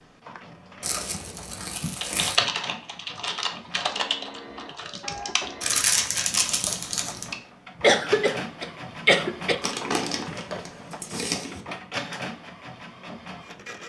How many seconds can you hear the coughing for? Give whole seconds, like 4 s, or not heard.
2 s.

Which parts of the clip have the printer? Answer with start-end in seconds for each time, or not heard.
0.0-13.8.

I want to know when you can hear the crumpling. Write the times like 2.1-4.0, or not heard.
0.8-2.4, 5.6-7.3, 9.6-11.6.